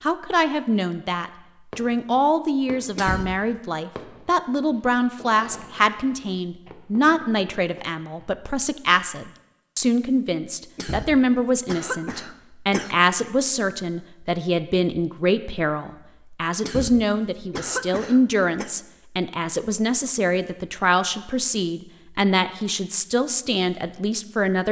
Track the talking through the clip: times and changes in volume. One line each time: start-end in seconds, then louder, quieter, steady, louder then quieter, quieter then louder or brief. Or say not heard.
0.0-24.6 steady.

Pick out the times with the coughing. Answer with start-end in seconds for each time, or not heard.
3.0-3.6, 10.8-12.9, 16.6-18.7.